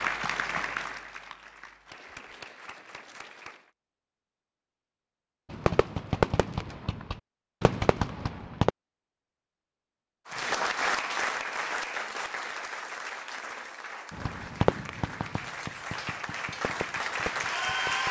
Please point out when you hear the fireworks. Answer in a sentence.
You can hear the fireworks from 5.5 to 8.7 s and from 14.1 to 18.0 s.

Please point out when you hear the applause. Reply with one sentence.
You can hear the applause from 0.0 to 3.7 s and from 10.2 to 18.0 s.